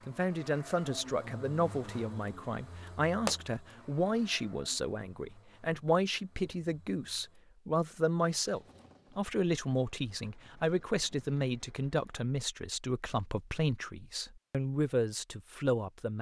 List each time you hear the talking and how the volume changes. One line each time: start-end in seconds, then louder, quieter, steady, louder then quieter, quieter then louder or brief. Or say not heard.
0.1-16.1 steady.